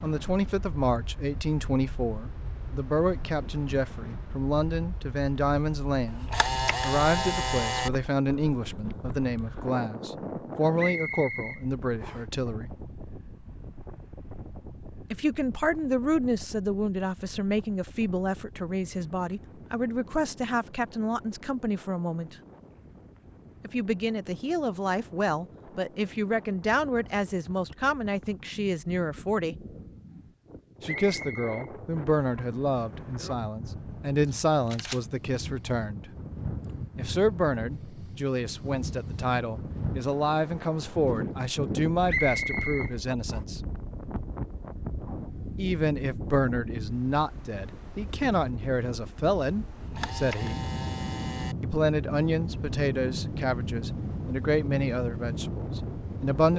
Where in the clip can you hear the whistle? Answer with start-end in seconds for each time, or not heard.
10.8-12.2, 31.1-31.7, 42.0-43.4.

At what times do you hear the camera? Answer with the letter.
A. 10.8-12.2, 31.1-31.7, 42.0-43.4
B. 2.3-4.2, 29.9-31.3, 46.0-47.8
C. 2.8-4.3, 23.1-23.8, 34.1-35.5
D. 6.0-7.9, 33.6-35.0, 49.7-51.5
D.